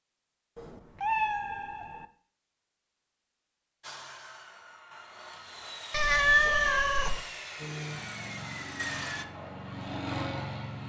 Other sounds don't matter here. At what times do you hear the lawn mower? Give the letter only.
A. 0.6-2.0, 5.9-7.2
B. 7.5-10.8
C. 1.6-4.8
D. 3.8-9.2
B.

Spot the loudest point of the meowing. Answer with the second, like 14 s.
6 s.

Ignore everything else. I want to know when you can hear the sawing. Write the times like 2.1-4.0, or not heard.
3.8-9.2.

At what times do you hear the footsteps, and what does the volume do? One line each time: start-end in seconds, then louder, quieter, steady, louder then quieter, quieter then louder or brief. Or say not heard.
not heard.